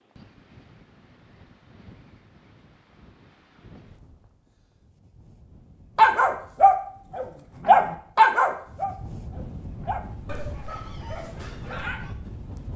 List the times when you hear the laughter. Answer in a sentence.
The laughter can't be heard in this clip.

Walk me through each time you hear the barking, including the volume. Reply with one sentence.
You can hear the barking from 6.0 to 12.2 s, getting quieter.